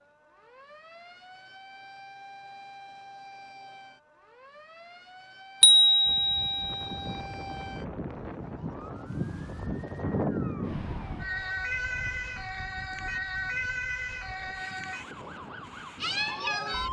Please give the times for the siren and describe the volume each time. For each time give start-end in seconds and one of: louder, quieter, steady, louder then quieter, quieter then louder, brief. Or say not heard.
0.0-16.8 louder.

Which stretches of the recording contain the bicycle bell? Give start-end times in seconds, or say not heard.
5.6-7.2.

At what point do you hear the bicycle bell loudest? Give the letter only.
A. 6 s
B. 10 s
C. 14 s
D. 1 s
A.